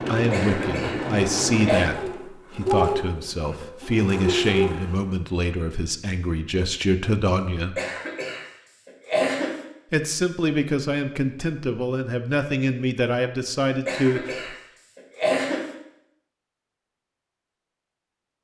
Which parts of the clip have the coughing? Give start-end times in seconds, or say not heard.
0.3-1.9, 7.8-9.7, 13.8-15.8.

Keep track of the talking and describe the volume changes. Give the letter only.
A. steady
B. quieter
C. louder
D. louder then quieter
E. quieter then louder
A.